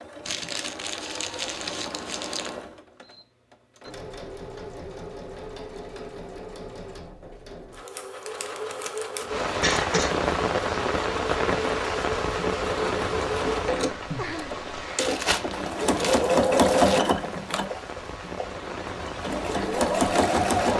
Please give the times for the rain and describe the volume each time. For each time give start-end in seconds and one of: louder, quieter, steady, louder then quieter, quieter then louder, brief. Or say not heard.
9.2-20.7 quieter.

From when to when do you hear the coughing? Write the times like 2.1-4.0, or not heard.
9.6-10.2.